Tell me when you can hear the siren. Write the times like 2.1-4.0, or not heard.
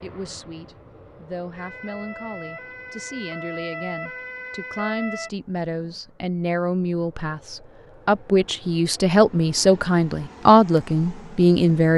1.6-5.3.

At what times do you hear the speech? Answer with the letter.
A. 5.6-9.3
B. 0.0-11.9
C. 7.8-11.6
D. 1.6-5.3
B.